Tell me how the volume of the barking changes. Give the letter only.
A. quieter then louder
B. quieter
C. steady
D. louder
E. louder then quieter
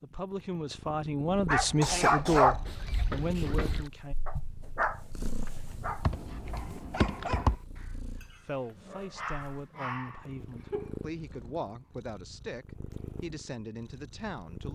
B.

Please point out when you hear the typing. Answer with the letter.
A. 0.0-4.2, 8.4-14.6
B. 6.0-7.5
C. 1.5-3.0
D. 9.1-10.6
B.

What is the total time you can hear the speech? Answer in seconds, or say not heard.
10 s.